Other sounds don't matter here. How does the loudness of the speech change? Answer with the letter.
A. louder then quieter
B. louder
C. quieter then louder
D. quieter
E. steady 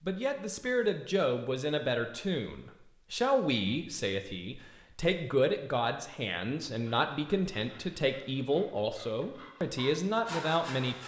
E.